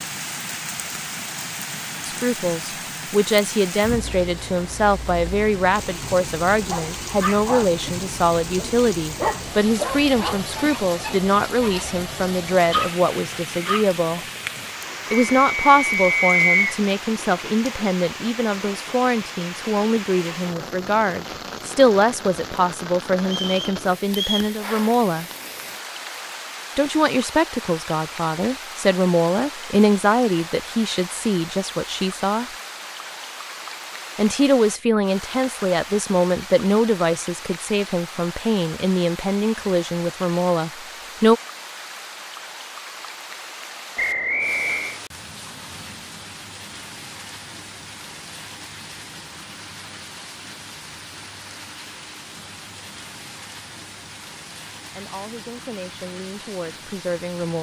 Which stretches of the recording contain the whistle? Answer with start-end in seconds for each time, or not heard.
15.1-16.8, 23.3-24.5, 44.0-45.0.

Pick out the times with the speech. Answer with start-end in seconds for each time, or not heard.
2.0-14.2, 15.1-25.2, 26.8-32.5, 34.1-41.4, 54.9-57.5.